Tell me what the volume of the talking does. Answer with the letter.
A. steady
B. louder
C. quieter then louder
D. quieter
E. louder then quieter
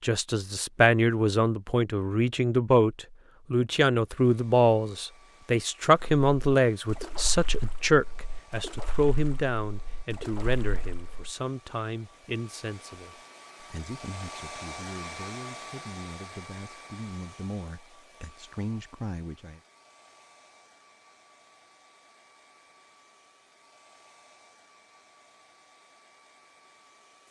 D.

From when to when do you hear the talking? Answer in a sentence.
You can hear the talking from 0.0 to 19.6 s.